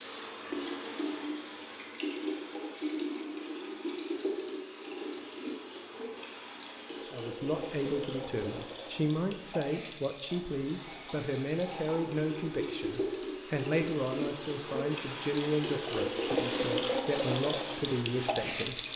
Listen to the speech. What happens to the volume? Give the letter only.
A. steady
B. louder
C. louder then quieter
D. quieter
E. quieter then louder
A.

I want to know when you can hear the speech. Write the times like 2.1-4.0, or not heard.
6.9-18.8.